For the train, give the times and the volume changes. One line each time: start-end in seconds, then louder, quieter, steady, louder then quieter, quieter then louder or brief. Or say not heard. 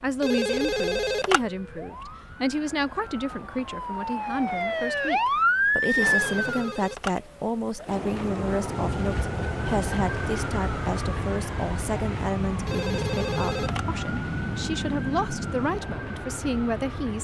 not heard.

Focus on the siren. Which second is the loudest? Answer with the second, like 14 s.
6 s.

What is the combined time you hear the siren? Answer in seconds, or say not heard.
17 s.